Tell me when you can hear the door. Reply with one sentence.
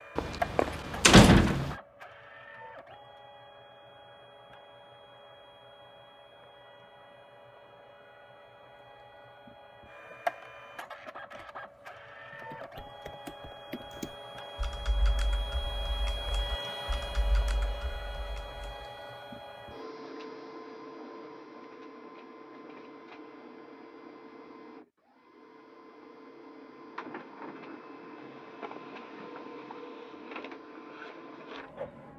You can hear the door from 0.1 to 1.8 s.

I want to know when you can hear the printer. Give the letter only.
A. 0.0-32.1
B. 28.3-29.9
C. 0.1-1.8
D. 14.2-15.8
A.